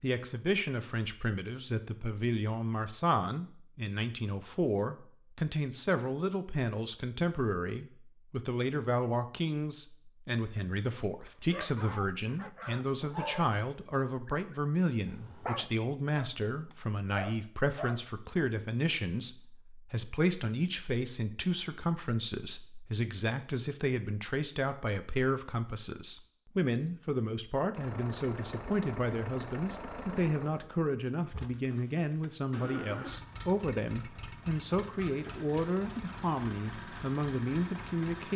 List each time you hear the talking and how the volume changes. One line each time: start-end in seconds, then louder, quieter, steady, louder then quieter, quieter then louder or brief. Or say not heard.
0.0-38.3 steady.